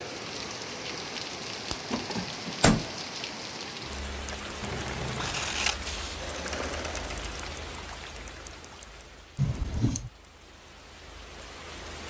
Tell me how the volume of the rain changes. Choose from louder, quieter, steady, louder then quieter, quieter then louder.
quieter.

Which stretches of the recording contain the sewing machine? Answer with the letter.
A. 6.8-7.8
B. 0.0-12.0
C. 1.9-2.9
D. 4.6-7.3
D.